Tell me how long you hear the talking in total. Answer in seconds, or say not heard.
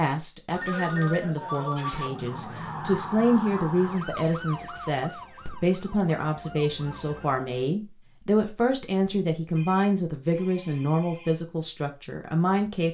13 s.